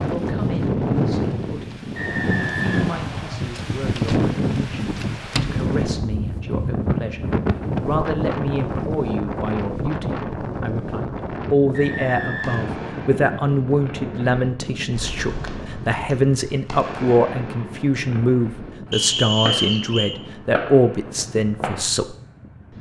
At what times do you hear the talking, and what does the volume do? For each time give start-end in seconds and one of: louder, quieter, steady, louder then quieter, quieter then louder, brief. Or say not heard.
0.0-22.1 louder.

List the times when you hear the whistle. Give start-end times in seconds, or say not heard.
1.9-3.4, 11.7-12.9, 18.9-20.1.